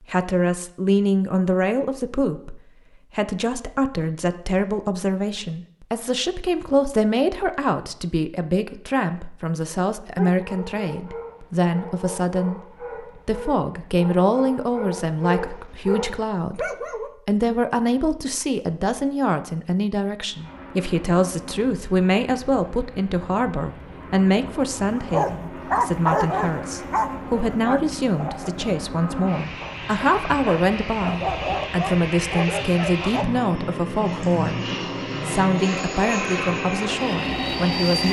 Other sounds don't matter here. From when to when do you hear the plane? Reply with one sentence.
The plane can be heard from 20.2 to 38.0 s.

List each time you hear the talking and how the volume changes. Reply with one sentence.
The talking can be heard from 0.0 to 34.6 s, at a steady volume; and briefly from 35.2 to 38.0 s.